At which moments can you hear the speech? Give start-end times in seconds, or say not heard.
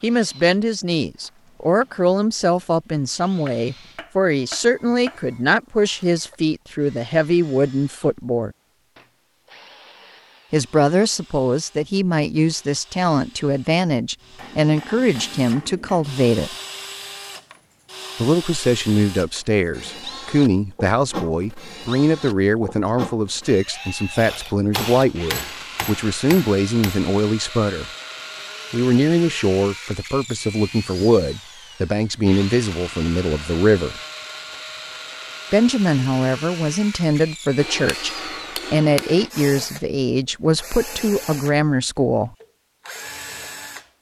0.0-8.5, 10.5-16.6, 18.2-27.9, 28.7-34.0, 35.5-38.1, 38.7-42.3.